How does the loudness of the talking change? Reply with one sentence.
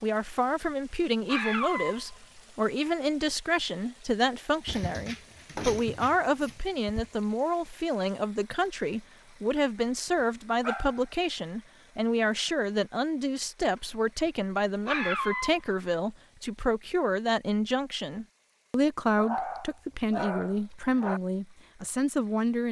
The volume of the talking stays about the same.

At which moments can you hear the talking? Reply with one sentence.
The talking can be heard from 0.0 to 22.6 s.